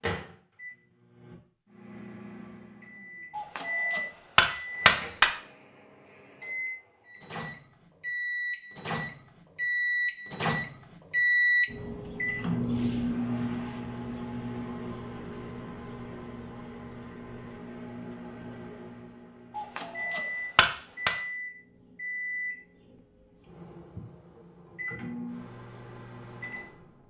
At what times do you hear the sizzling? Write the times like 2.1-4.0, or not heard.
not heard.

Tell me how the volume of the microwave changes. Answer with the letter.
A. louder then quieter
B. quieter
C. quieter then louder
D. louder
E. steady
A.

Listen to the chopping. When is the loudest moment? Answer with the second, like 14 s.
5 s.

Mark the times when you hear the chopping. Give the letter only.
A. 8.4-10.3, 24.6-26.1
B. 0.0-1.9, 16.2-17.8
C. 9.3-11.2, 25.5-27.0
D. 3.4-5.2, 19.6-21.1
D.